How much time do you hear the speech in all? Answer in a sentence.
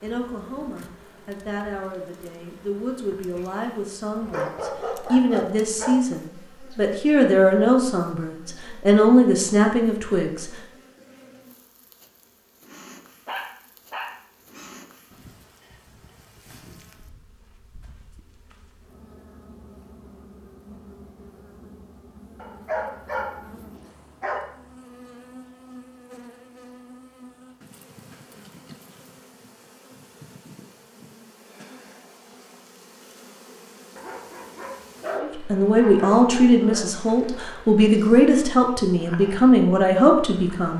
You can hear the speech for 16 seconds altogether.